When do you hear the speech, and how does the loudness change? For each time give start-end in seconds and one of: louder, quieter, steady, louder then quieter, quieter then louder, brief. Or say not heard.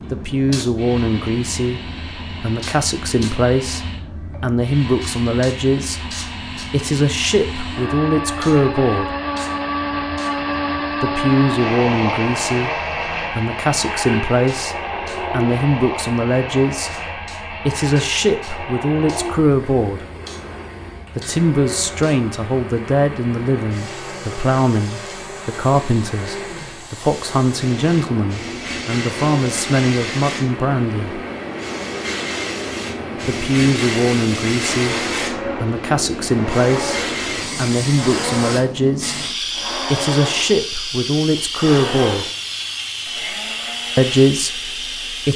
0.1-9.2 steady
11.0-20.1 steady
21.1-31.2 steady
33.2-42.3 steady
44.0-45.3 brief.